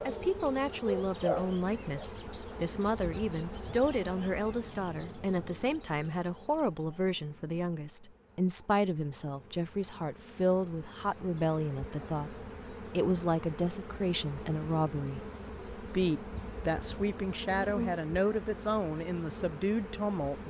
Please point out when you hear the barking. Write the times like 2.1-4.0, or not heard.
0.0-2.0.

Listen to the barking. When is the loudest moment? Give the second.
1 s.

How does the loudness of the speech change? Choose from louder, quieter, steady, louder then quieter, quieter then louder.
steady.